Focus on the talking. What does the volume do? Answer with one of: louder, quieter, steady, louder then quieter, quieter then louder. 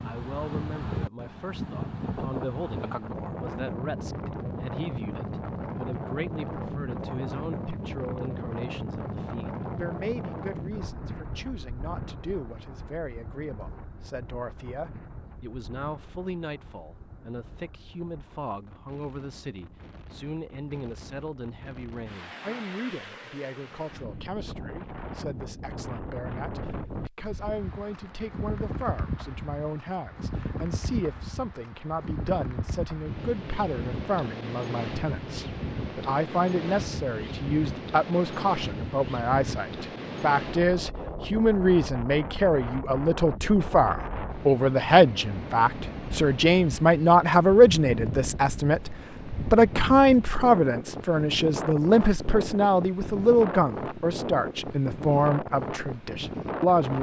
louder.